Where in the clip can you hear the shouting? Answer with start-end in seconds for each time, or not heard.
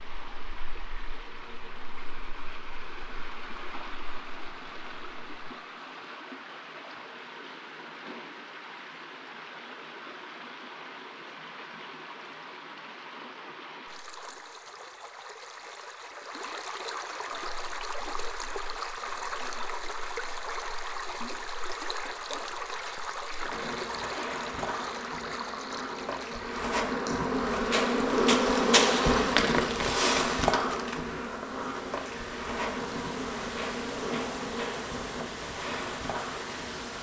not heard.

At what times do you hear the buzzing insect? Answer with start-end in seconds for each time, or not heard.
0.0-5.5, 17.4-36.9.